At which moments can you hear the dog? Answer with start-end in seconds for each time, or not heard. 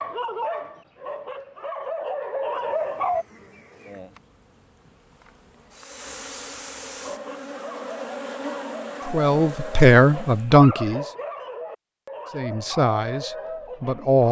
0.0-3.2, 7.0-14.2.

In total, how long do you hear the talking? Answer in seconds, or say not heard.
4 s.